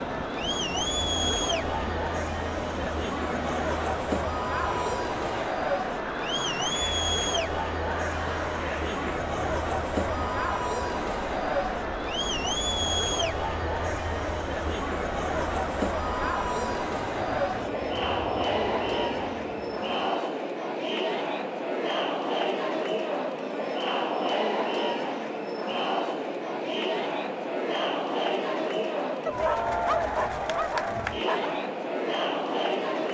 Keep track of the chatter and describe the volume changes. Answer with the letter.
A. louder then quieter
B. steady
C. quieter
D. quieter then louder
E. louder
B.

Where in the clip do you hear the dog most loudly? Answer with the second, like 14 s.
30 s.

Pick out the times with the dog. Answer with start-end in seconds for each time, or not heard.
29.2-31.6.